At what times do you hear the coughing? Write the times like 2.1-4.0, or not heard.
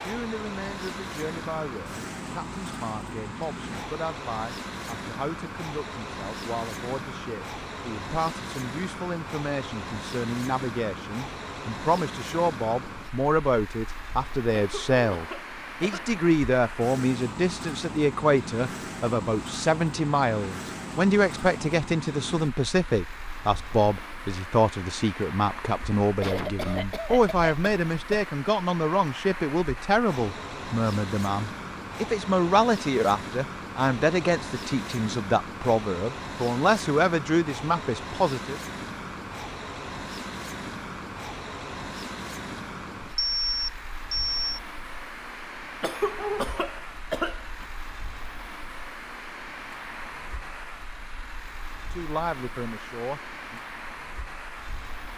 14.6-16.1, 26.2-28.1, 45.8-47.6.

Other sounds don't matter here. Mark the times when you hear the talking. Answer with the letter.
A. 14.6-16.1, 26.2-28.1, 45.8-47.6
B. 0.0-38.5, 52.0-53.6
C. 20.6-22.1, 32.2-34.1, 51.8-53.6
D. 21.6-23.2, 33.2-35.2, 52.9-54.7
B.